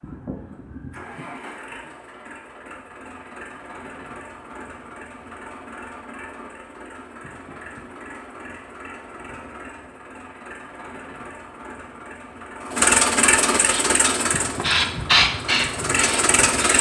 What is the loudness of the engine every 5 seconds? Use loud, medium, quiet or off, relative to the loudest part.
quiet, quiet, loud, loud.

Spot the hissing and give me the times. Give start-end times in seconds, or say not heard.
13.7-16.7.